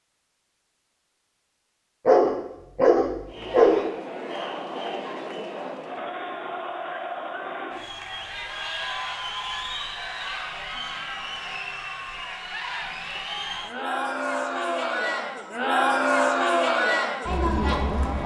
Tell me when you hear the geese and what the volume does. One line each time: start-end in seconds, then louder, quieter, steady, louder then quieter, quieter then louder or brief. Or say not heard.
not heard.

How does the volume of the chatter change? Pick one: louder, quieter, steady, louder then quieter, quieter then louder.
louder.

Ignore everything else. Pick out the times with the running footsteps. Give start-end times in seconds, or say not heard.
not heard.